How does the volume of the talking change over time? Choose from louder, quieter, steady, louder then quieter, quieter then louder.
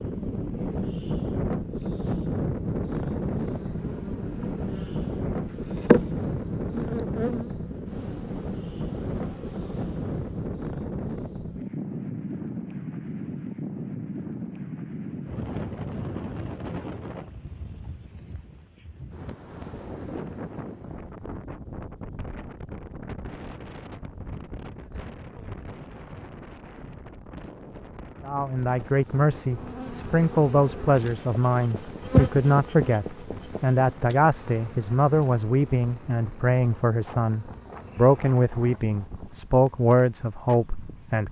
steady.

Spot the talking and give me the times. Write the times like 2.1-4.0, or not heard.
28.2-41.2.